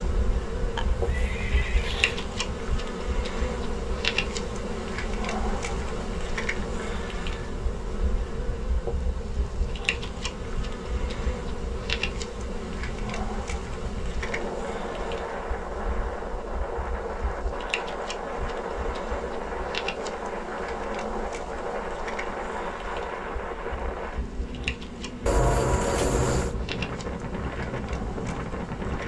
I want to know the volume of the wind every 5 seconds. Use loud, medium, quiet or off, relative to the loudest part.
medium, medium, medium, loud, loud, loud.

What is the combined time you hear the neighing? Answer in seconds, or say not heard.
3 s.